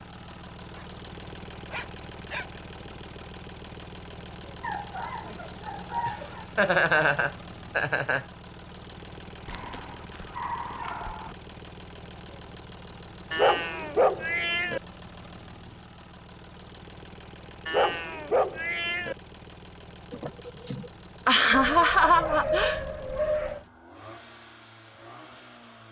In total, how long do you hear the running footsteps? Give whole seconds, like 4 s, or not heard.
not heard.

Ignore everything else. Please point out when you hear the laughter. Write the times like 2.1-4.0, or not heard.
6.0-8.2, 20.1-22.8.